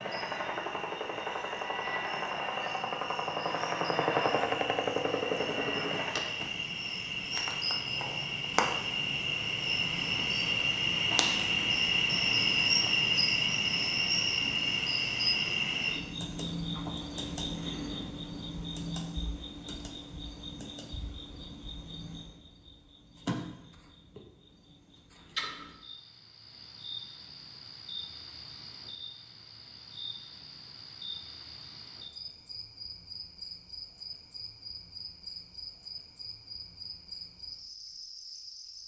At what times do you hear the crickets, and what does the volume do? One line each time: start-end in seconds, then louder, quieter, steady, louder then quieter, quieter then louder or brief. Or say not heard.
0.0-38.8 louder then quieter.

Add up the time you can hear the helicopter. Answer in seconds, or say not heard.
6 s.